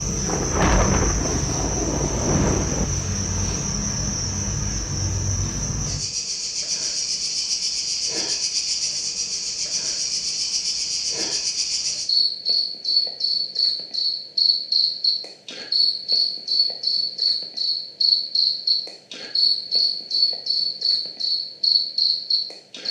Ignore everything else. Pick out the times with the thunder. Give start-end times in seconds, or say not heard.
0.2-2.9.